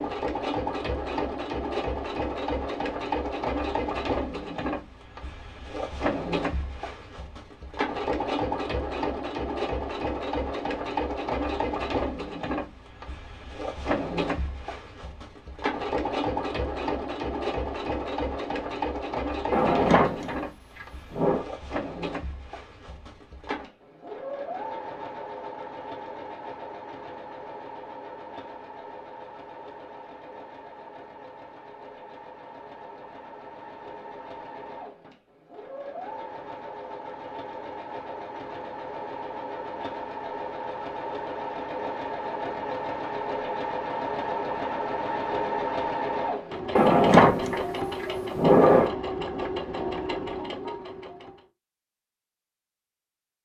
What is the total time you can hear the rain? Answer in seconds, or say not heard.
not heard.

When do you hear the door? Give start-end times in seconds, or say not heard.
19.5-21.4, 46.8-48.9.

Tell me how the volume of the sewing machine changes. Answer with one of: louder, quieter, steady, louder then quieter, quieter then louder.
quieter then louder.